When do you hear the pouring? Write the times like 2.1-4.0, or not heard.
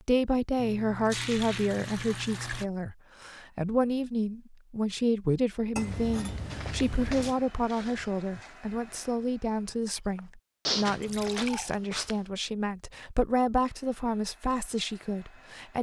0.6-2.6, 5.8-7.3, 11.0-11.8.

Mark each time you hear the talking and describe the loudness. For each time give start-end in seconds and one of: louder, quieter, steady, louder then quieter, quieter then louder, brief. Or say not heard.
0.1-15.7 steady.